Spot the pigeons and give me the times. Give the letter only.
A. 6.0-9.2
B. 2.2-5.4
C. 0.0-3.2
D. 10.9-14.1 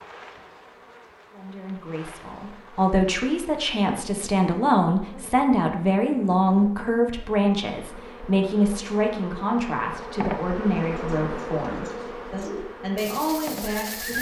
D.